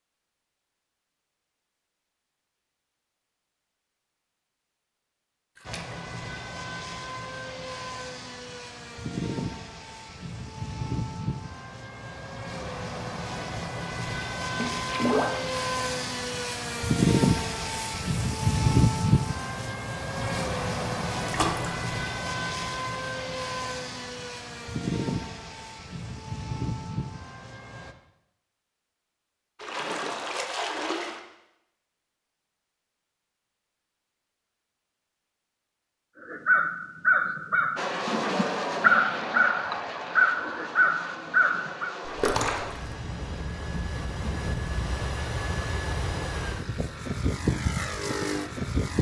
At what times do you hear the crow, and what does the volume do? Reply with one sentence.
You can hear the crow from 36.2 to 42.0 s, getting quieter then louder.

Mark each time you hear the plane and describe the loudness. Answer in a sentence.
The plane can be heard from 5.7 to 27.9 s, getting louder then quieter; and from 37.8 to 48.9 s, getting quieter then louder.